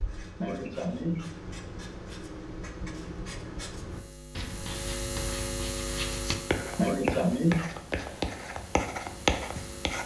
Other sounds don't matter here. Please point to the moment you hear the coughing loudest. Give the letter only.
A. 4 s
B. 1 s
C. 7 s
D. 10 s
C.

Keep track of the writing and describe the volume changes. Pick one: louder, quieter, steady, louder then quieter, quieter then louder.
louder.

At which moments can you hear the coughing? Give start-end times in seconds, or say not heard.
0.4-1.4, 6.8-7.7.